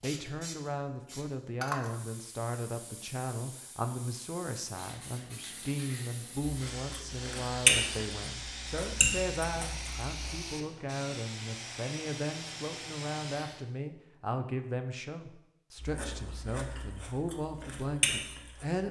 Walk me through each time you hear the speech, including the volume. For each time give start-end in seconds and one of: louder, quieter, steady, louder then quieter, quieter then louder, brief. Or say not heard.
0.0-18.8 steady.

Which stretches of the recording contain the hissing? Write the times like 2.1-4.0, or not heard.
0.0-13.6.